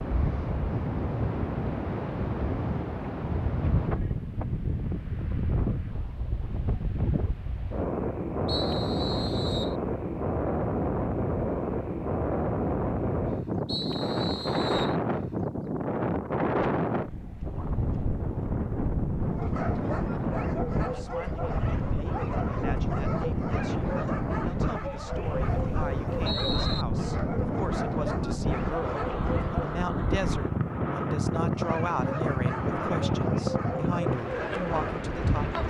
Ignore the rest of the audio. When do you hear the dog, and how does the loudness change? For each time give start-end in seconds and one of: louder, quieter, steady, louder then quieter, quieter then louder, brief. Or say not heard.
19.2-29.9 steady
31.4-35.6 steady.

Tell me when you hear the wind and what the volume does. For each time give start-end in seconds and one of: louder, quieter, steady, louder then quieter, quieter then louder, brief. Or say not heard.
0.0-35.6 steady.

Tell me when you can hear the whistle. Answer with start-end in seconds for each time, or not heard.
8.4-9.8, 13.7-14.9, 25.2-26.9.